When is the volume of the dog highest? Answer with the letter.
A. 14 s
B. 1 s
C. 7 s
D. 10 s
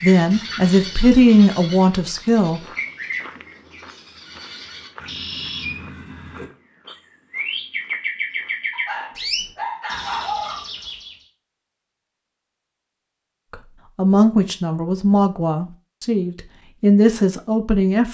D.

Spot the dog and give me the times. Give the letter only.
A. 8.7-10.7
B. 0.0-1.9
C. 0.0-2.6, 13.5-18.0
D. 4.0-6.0
A.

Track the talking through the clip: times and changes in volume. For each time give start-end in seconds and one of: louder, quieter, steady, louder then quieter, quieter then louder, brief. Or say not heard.
0.0-2.6 brief
13.5-18.0 quieter then louder.